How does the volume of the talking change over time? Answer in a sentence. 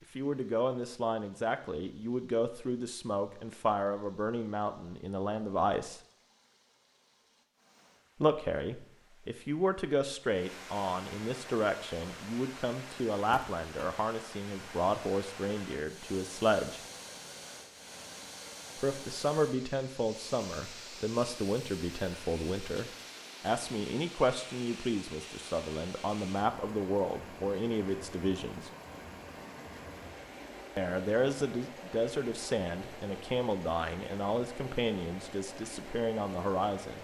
The volume of the talking stays about the same.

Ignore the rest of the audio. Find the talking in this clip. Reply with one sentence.
You can hear the talking from 0.1 to 6.0 s, from 8.2 to 16.8 s, from 18.8 to 28.7 s and from 30.8 to 36.9 s.